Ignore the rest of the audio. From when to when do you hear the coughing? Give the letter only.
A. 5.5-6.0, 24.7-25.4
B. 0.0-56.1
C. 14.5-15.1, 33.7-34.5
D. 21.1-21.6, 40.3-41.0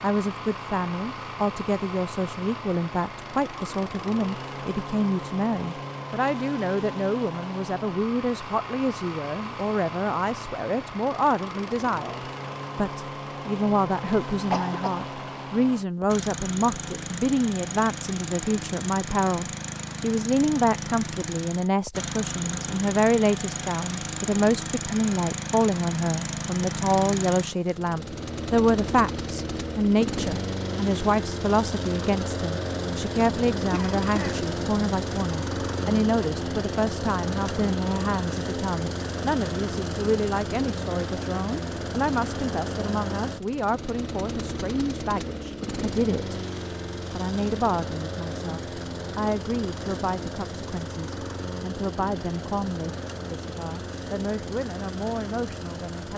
C.